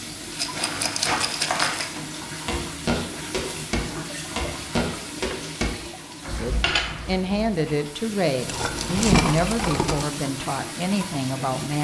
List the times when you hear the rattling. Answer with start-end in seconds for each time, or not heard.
0.3-1.9, 8.4-10.1.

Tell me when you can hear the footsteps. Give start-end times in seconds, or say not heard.
0.5-7.8.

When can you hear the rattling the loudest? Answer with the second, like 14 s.
9 s.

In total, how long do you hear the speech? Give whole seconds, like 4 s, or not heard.
5 s.